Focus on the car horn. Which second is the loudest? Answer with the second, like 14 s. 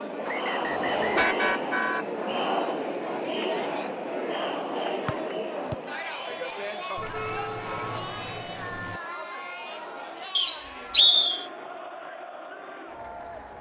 1 s.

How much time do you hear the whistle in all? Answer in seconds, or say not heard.
3 s.